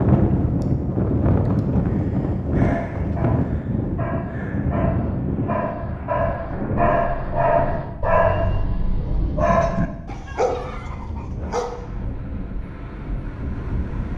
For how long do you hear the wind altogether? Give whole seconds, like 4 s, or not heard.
14 s.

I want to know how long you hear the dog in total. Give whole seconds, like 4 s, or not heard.
9 s.